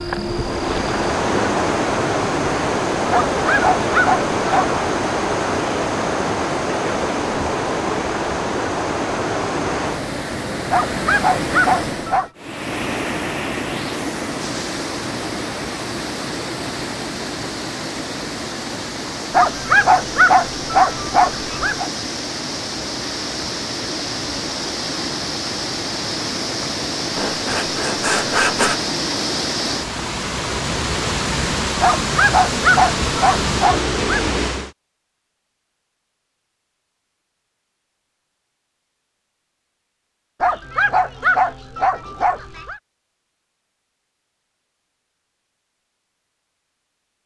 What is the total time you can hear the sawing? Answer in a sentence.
The sawing can be heard for 2 seconds in total.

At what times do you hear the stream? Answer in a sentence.
You can hear the stream from 0.0 to 34.8 s.